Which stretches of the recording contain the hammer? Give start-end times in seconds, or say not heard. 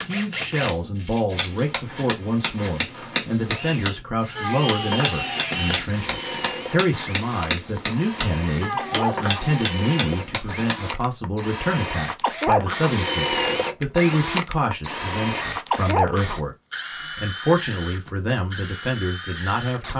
1.3-10.8.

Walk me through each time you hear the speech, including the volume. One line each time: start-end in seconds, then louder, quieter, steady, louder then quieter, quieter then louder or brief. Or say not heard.
0.1-16.6 steady
17.1-19.9 brief.